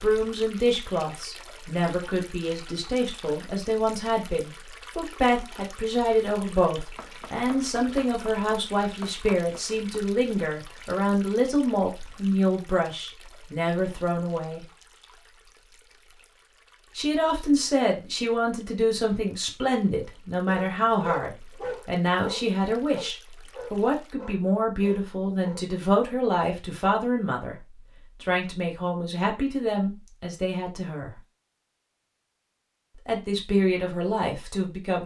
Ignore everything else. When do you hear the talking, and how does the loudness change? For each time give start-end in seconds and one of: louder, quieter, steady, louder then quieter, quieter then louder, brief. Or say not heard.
0.0-14.7 steady
16.9-27.6 steady
28.2-31.1 brief
33.0-35.0 brief.